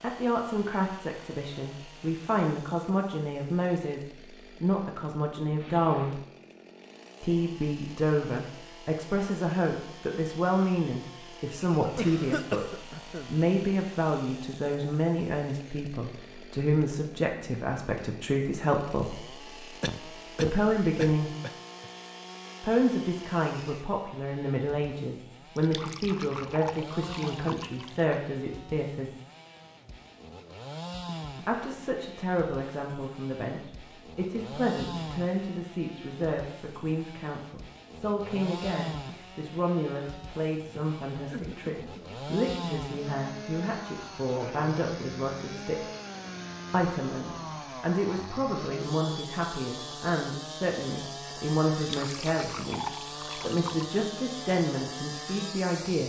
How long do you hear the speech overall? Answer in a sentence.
You can hear the speech for 50 seconds altogether.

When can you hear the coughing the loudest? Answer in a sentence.
The loudest moment of the coughing is at 12 seconds.